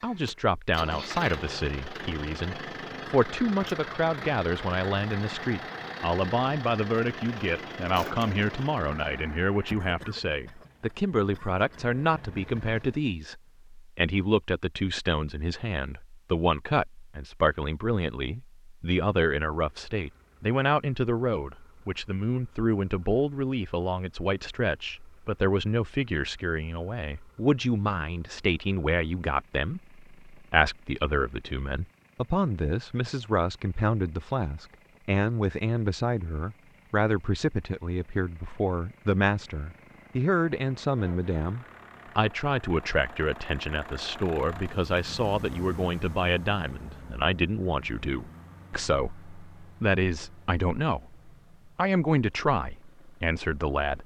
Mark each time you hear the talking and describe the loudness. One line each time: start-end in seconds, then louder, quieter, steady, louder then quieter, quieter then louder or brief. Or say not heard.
0.0-54.0 steady.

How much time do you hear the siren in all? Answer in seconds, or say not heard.
not heard.